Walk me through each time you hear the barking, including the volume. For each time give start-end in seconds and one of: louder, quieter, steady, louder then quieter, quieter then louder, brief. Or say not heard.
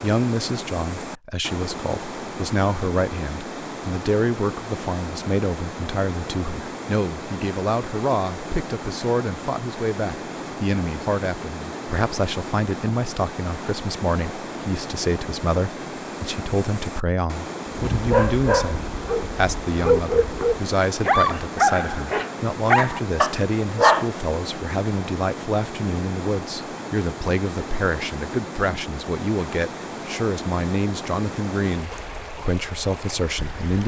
17.8-24.1 steady.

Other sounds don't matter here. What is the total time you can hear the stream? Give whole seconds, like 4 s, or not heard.
34 s.